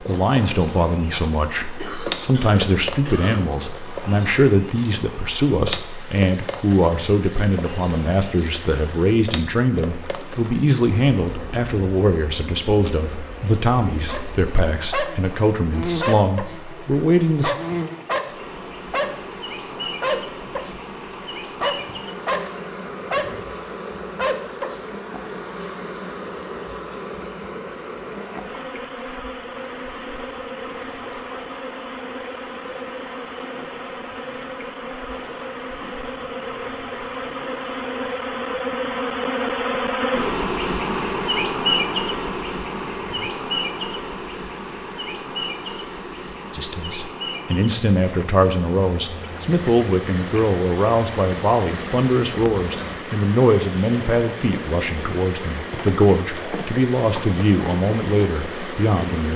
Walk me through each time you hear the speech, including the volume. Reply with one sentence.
The speech can be heard from 0.0 to 17.6 s, at a steady volume; and from 46.5 to 59.3 s, at a steady volume.